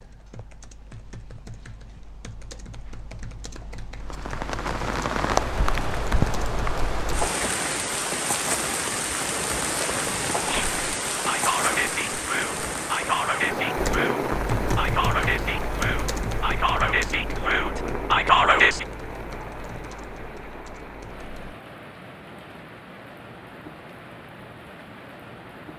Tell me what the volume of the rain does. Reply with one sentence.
The loudness of the rain goes down.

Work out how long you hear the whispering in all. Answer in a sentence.
You can hear the whispering for 9 seconds altogether.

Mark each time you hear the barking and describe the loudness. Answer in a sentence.
You can't hear the barking here.